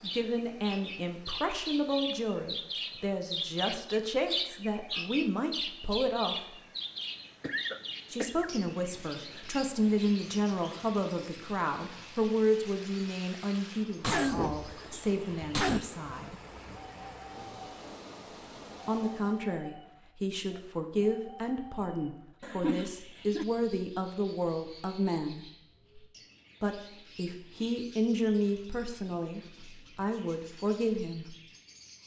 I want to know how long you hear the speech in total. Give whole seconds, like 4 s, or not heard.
26 s.